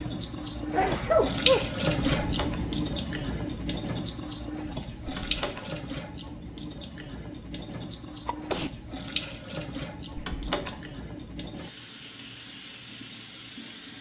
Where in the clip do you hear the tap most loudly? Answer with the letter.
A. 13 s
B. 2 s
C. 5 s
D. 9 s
B.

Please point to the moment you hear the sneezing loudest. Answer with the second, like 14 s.
1 s.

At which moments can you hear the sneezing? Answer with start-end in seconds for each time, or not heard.
0.7-1.7, 8.2-8.7.